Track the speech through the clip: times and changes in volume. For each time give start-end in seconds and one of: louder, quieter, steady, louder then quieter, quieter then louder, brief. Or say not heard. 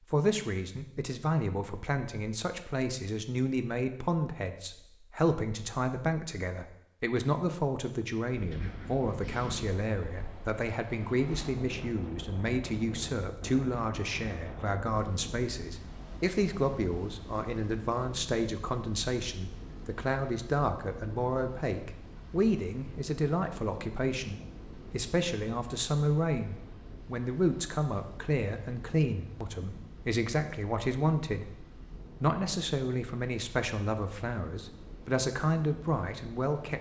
0.1-36.7 steady.